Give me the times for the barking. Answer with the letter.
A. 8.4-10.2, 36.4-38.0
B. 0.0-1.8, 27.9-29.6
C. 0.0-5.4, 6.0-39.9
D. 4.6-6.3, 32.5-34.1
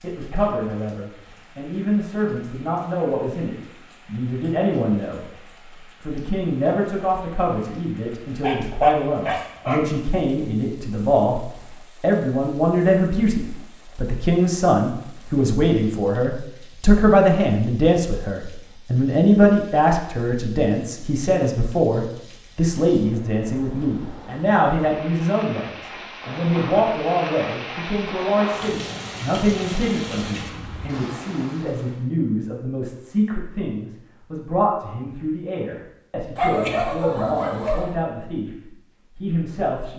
A.